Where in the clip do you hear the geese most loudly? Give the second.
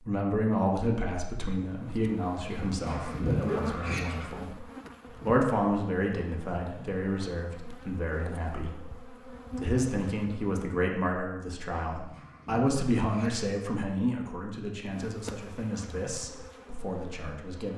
3 s.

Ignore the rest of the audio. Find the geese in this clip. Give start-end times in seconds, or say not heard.
2.5-4.3, 11.9-13.4.